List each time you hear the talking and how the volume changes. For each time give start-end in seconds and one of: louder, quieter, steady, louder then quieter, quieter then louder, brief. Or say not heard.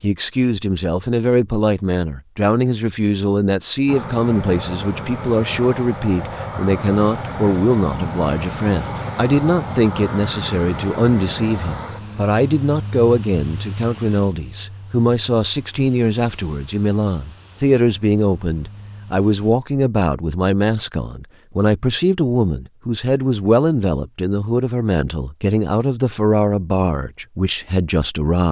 0.0-28.4 steady.